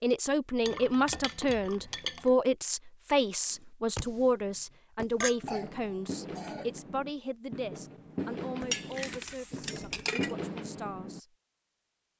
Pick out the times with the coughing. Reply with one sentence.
The coughing can be heard from 5.5 to 6.8 s.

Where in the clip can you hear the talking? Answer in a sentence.
The talking can be heard from 0.0 to 11.3 s.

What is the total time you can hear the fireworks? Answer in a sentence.
The fireworks can be heard for 8 seconds in total.